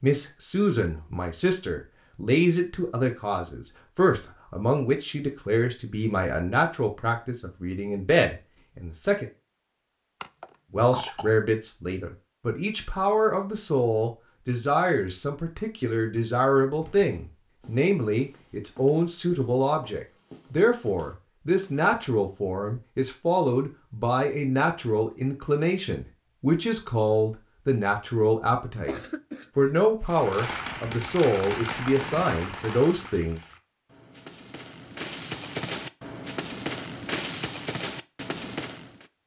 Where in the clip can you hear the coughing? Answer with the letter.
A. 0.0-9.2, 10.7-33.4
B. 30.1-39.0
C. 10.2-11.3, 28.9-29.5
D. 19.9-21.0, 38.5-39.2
C.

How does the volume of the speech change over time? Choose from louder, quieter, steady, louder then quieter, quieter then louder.
steady.